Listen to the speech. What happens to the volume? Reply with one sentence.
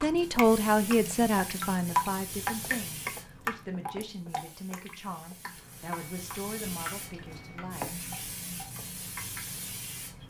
The volume of the speech goes down.